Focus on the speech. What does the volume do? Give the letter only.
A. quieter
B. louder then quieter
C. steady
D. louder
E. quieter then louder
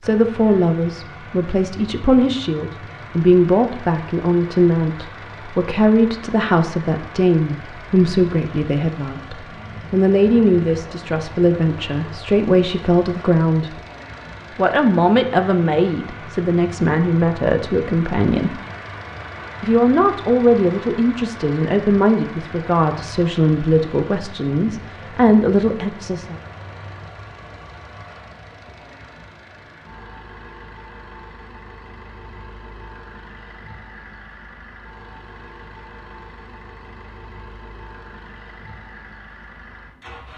C.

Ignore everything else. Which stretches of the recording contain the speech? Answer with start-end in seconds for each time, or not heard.
0.0-13.8, 14.6-18.6, 19.6-26.4.